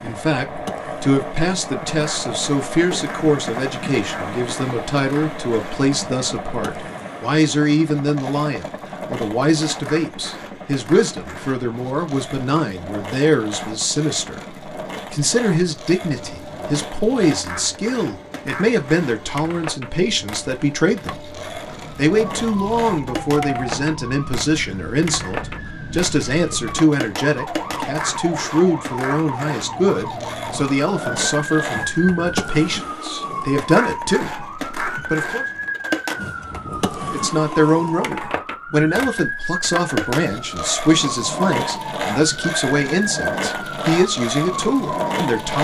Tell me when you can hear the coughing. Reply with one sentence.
You can't hear the coughing here.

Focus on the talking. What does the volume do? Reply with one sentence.
The loudness of the talking stays about the same.